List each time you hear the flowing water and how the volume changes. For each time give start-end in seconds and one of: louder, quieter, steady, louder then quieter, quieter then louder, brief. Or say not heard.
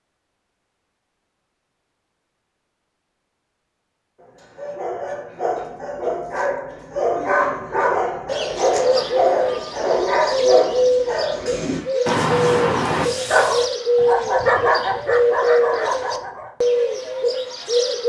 not heard.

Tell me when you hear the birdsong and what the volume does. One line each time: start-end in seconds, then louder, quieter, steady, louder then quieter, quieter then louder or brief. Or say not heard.
8.2-18.0 steady.